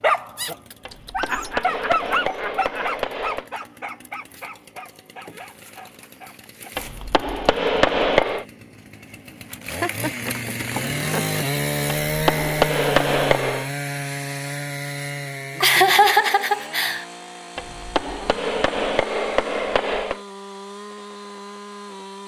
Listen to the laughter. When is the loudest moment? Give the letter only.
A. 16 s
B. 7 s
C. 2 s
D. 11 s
A.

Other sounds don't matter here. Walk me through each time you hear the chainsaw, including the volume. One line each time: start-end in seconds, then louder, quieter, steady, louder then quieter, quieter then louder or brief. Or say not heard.
0.0-22.2 louder then quieter.